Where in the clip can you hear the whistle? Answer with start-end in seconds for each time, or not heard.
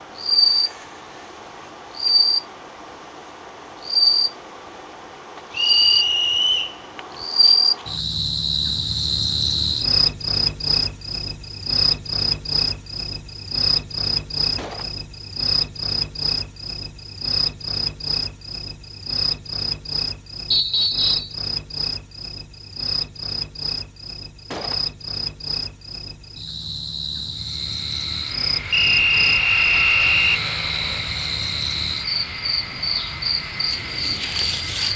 5.5-6.8, 20.5-21.4, 28.7-30.4.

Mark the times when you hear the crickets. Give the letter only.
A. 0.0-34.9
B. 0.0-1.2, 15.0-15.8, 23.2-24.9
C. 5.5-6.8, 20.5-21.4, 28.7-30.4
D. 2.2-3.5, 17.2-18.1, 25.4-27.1
A.